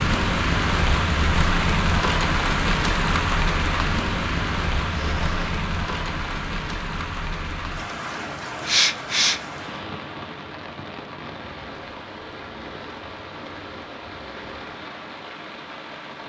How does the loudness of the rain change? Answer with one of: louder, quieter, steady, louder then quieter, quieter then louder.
quieter.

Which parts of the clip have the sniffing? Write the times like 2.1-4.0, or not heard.
4.8-5.4, 8.7-9.8.